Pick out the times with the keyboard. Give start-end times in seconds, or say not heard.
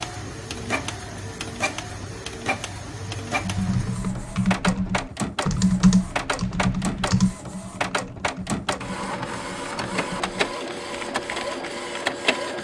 3.4-11.8.